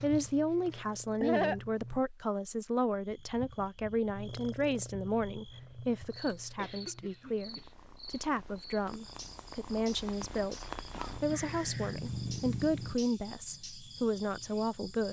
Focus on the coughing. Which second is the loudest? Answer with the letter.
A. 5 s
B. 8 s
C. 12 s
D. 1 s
D.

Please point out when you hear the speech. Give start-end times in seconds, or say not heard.
0.0-15.0.